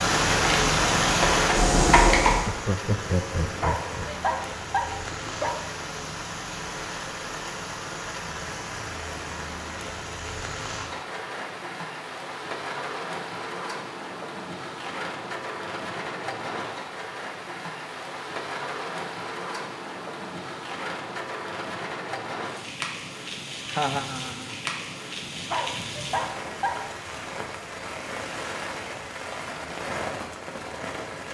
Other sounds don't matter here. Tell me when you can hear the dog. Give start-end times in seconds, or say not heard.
3.4-5.6, 25.2-26.9.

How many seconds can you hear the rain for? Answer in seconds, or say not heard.
31 s.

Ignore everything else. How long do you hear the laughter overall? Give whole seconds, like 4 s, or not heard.
3 s.